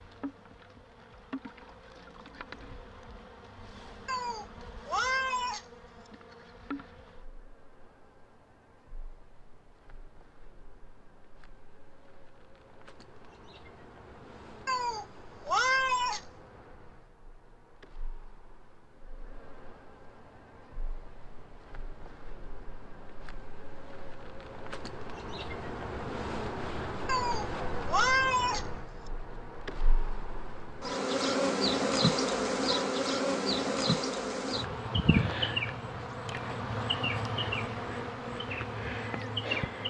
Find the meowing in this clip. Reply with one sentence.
The meowing can be heard from 4.0 to 6.1 s, from 14.7 to 16.2 s and from 27.1 to 29.1 s.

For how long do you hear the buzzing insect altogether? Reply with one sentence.
You can hear the buzzing insect for 40 seconds altogether.